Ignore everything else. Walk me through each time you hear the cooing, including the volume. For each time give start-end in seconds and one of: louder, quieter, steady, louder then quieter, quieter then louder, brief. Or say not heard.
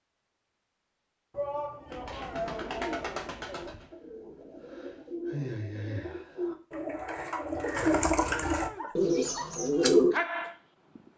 1.9-10.2 quieter then louder.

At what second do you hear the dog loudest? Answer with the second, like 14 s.
10 s.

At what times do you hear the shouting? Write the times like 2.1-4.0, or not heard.
1.3-3.8, 8.2-8.9.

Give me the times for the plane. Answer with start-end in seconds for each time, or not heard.
not heard.